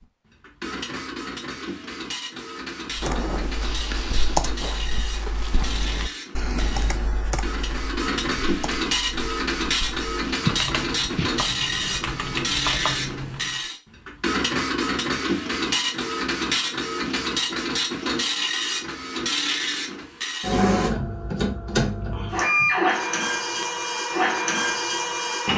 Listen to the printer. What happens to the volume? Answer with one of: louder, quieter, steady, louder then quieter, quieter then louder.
louder.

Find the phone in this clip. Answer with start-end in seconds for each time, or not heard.
not heard.